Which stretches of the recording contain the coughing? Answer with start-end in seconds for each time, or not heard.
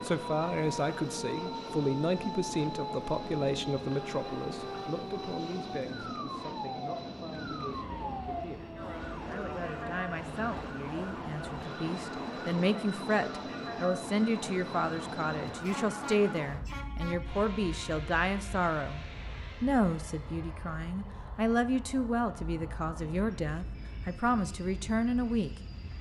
not heard.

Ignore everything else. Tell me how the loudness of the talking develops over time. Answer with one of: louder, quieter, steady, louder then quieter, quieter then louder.
quieter then louder.